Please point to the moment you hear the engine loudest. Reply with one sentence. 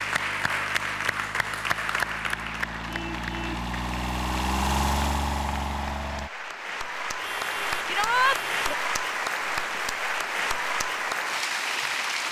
The volume of the engine peaks at 5 seconds.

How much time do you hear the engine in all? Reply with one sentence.
You can hear the engine for 6 seconds altogether.